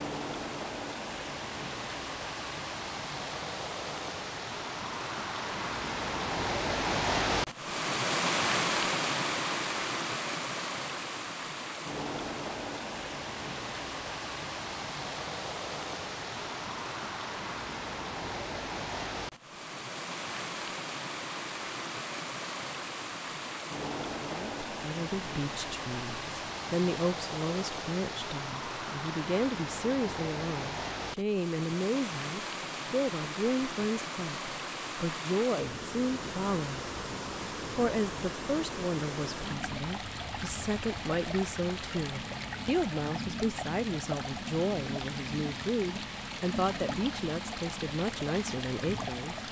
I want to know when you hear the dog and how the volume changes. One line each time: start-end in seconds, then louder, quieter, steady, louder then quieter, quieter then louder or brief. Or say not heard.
not heard.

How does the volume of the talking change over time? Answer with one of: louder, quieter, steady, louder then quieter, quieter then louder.
steady.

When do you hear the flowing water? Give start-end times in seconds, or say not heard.
0.0-49.4.